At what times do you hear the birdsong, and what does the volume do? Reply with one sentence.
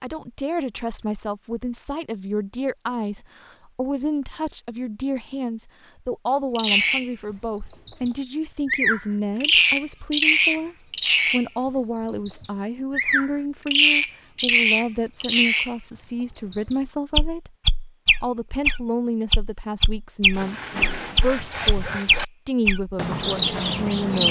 The birdsong can be heard from 6.5 to 24.2 s, at a steady volume.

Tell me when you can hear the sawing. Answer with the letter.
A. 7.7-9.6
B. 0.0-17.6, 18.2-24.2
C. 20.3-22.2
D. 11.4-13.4
C.